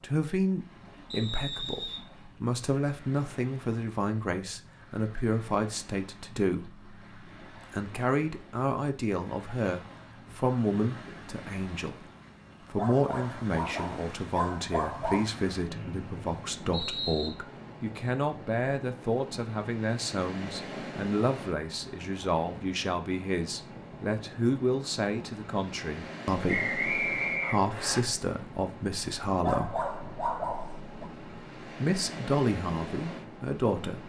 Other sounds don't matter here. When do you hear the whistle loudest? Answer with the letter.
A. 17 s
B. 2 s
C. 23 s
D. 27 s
D.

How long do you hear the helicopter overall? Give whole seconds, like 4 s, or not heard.
not heard.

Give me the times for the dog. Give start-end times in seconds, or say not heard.
12.8-15.3, 29.4-31.1.